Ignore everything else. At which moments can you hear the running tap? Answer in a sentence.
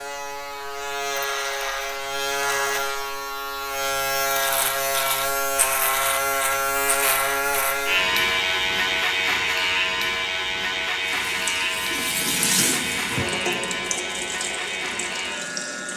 The running tap can be heard from 11.2 to 15.9 s.